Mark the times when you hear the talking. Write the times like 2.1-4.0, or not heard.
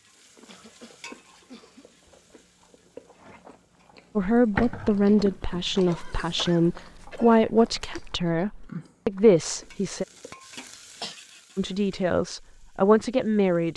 4.2-10.1, 11.6-13.7.